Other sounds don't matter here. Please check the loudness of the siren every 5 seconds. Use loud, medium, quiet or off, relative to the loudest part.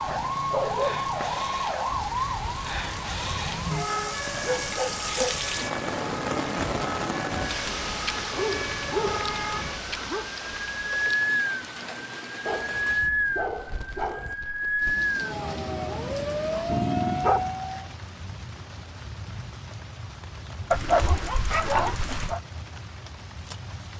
loud, medium, loud, loud, off.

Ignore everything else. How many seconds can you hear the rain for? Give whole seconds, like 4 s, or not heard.
24 s.